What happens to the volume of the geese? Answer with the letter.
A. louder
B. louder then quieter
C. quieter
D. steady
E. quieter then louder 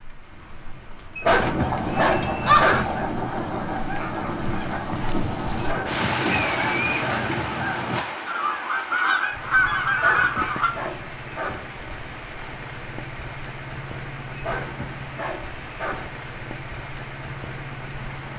E.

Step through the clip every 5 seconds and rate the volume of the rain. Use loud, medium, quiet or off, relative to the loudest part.
quiet, loud, medium, medium.